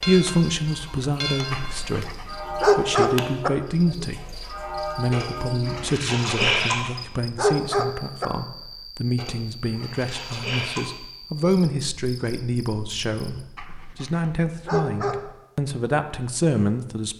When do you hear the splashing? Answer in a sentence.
You can hear the splashing from 5.1 to 6.8 s and from 9.2 to 10.8 s.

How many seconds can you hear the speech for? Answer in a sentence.
You can hear the speech for 17 seconds altogether.